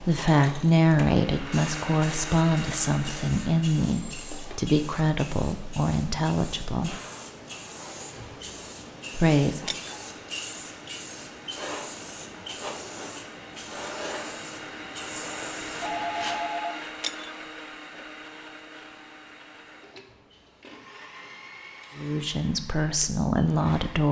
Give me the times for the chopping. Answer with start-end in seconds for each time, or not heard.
not heard.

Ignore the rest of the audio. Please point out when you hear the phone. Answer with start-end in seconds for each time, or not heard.
3.9-4.4, 15.8-16.8.